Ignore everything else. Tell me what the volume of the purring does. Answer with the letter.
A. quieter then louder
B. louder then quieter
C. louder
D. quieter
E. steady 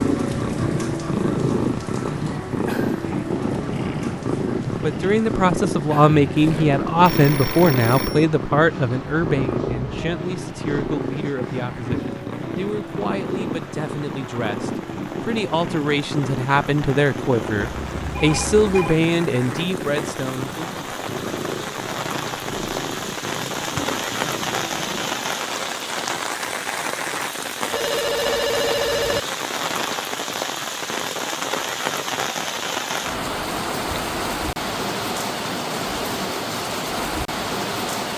D.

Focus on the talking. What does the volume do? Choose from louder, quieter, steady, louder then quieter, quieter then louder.
quieter then louder.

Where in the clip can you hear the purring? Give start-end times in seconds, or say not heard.
0.0-25.4.